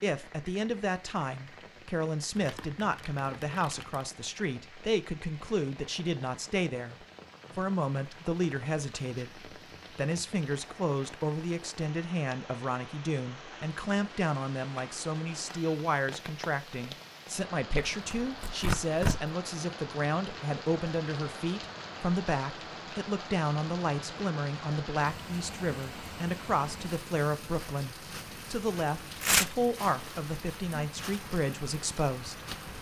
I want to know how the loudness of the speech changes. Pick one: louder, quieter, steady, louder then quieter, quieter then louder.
steady.